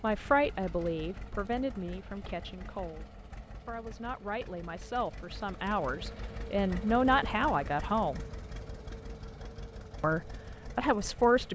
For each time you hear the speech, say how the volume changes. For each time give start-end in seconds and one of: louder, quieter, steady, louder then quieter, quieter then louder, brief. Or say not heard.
0.0-8.2 quieter then louder
10.0-11.5 brief.